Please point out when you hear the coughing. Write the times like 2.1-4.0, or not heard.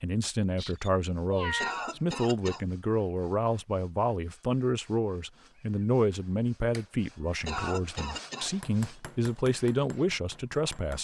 1.6-2.6, 7.5-8.5.